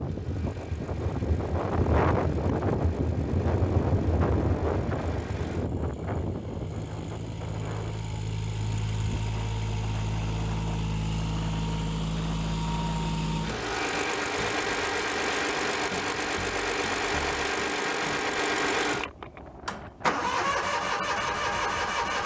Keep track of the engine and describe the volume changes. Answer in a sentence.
The volume of the engine goes up.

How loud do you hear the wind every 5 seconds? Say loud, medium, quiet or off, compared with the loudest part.
loud, medium, quiet, quiet, quiet.